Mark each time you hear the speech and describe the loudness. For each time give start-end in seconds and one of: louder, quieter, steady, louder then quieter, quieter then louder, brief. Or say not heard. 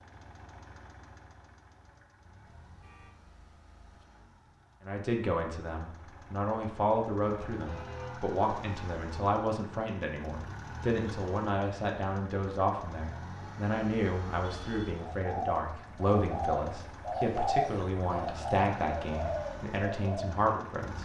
4.8-20.9 steady.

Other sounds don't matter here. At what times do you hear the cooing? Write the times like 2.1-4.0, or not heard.
14.9-20.4.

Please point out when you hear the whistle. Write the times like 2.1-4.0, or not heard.
not heard.